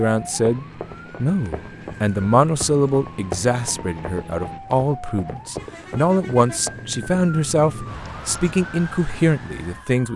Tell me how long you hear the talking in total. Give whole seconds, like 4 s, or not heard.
10 s.